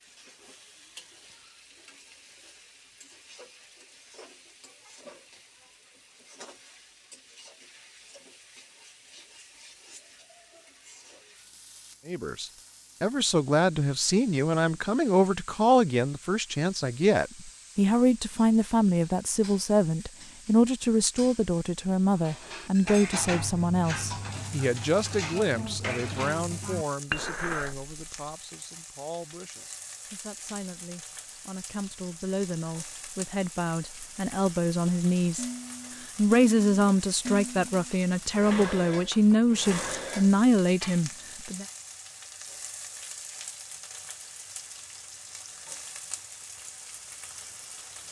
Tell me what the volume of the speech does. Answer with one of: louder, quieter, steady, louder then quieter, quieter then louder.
quieter then louder.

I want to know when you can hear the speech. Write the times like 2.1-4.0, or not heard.
12.1-35.5, 36.1-41.6.